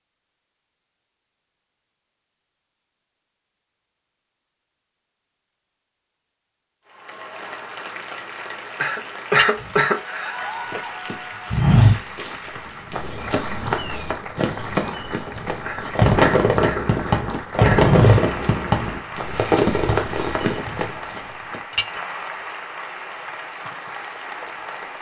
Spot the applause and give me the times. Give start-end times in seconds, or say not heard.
6.8-24.9.